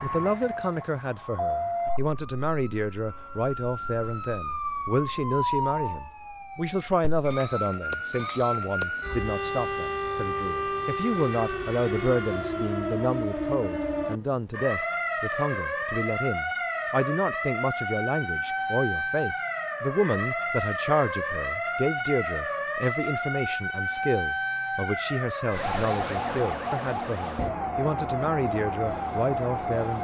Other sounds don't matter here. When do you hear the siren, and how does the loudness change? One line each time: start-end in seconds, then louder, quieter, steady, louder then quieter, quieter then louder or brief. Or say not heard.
0.0-29.9 steady.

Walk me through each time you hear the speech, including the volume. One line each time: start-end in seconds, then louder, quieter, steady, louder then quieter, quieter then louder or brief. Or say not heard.
0.0-29.9 steady.